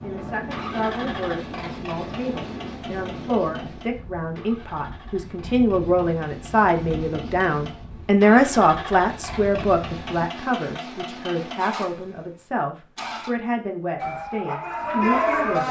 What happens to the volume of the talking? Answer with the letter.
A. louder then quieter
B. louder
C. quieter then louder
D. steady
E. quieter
A.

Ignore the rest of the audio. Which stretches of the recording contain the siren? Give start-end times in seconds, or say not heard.
14.0-15.6.